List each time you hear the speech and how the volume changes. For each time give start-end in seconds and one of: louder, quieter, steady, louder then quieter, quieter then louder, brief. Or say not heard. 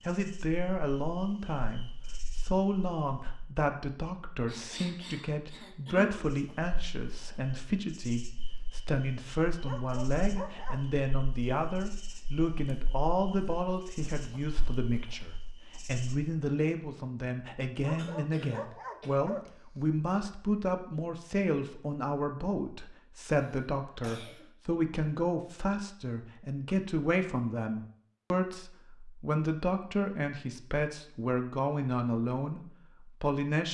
0.0-33.6 steady.